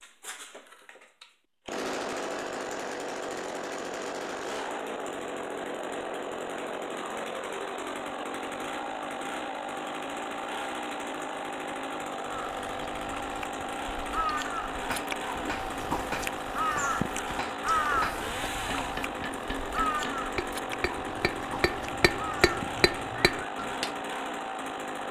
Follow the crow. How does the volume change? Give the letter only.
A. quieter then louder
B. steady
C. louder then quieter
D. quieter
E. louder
C.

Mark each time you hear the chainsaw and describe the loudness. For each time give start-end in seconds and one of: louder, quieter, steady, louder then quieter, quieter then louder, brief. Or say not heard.
0.0-25.0 steady.